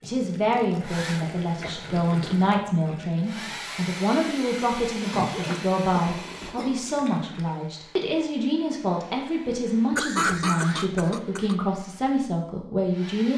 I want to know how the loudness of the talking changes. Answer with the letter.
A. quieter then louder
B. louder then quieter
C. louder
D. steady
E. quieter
D.